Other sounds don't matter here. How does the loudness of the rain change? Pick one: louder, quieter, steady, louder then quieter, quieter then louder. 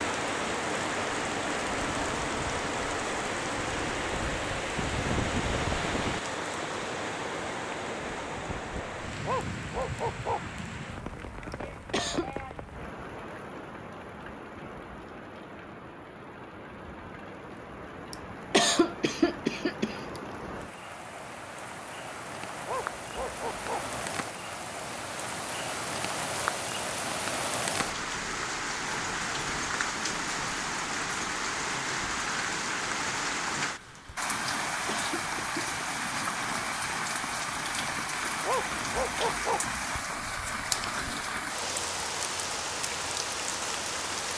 quieter then louder.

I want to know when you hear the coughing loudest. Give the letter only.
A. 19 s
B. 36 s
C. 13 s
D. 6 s
A.